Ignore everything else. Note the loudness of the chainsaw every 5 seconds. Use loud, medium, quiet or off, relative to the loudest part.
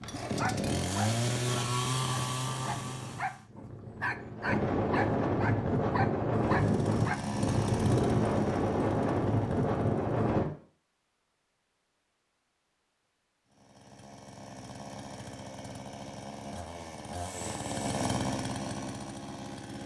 loud, medium, quiet, medium.